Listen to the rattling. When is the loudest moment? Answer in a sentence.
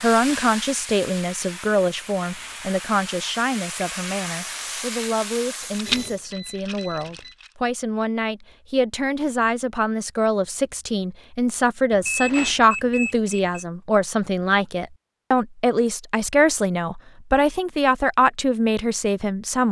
The volume of the rattling peaks at 6 seconds.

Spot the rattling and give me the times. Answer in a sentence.
You can hear the rattling from 5.8 to 7.5 s and from 12.2 to 12.7 s.